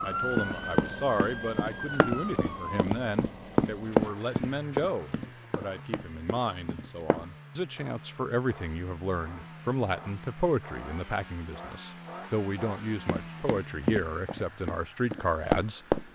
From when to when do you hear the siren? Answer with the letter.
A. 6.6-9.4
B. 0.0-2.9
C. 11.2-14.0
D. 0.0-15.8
B.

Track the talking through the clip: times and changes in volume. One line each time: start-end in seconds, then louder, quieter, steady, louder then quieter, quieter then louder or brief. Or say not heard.
0.0-15.8 steady.